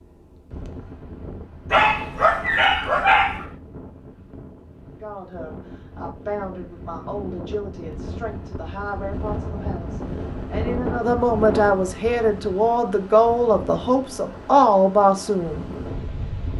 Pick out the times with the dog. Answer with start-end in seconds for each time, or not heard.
1.7-3.5.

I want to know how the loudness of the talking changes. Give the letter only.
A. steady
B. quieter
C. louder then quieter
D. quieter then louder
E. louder
E.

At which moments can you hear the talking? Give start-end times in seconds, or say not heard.
4.9-15.7.